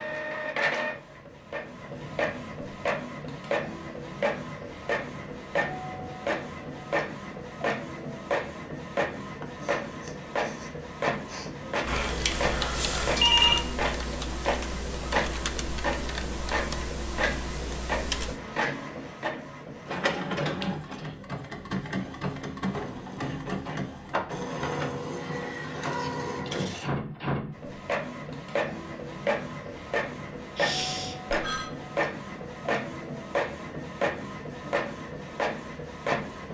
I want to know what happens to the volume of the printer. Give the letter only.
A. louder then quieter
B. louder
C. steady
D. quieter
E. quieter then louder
C.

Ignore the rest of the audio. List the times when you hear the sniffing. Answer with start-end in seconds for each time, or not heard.
9.3-11.6, 30.6-31.2.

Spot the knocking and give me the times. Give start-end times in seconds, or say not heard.
not heard.